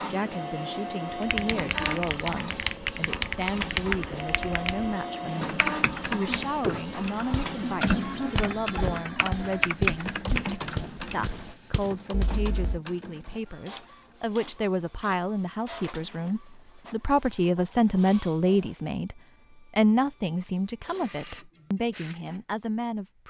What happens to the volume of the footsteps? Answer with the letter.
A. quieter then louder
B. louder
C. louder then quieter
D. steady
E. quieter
C.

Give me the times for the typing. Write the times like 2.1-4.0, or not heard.
1.2-11.4.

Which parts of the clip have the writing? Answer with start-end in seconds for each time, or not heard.
not heard.